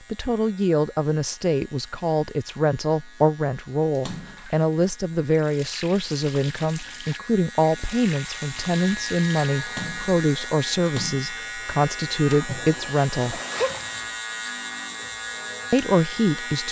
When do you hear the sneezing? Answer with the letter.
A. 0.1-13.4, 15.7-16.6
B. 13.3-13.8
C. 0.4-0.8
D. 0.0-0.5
B.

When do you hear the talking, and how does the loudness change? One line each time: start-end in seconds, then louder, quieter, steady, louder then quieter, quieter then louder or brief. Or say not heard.
0.1-13.4 steady
15.7-16.6 brief.